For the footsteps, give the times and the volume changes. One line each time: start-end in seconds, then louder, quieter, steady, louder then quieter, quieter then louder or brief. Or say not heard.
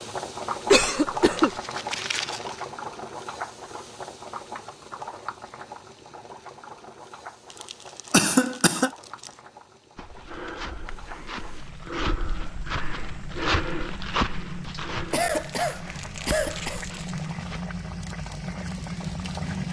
9.9-17.6 louder then quieter.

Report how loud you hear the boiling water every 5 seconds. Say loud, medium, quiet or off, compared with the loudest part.
loud, medium, medium, loud.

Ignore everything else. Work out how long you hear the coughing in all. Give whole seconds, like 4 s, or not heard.
3 s.